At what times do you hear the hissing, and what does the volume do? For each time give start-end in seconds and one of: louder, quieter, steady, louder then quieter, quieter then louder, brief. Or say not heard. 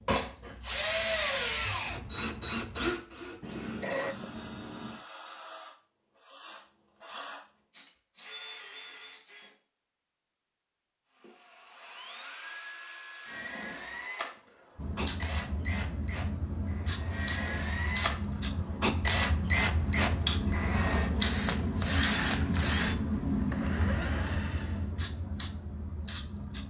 14.8-26.6 louder then quieter.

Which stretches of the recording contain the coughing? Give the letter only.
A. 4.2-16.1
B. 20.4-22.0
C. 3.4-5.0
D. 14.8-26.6
C.